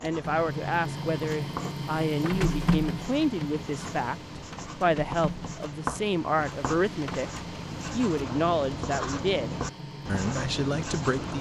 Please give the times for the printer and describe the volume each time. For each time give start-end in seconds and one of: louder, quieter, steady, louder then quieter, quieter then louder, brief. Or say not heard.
0.1-11.3 quieter.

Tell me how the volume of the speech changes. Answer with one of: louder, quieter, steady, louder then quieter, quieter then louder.
steady.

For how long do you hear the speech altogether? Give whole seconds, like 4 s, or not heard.
11 s.